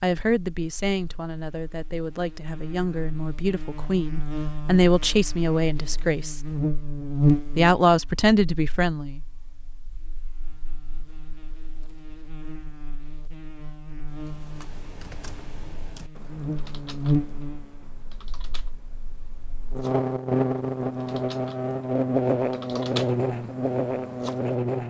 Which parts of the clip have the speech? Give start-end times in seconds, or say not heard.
0.0-6.4, 7.5-9.2.